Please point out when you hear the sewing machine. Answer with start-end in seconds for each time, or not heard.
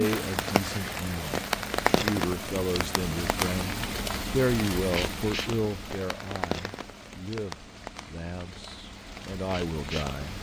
not heard.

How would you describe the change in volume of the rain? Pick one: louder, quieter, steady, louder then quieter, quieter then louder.
quieter.